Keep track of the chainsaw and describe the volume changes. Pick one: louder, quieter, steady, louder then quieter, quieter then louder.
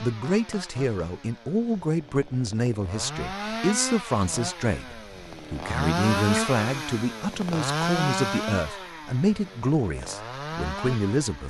louder then quieter.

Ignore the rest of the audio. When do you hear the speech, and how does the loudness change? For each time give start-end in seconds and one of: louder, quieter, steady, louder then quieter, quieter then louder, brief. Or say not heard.
0.0-11.4 steady.